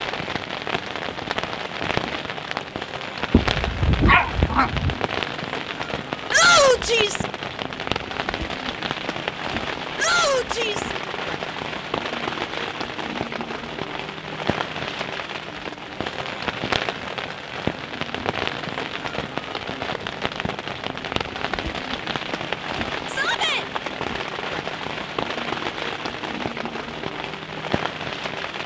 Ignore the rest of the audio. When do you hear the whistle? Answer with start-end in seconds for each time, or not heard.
not heard.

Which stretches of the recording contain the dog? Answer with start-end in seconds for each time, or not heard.
3.3-5.0.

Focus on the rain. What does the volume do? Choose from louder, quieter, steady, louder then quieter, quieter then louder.
steady.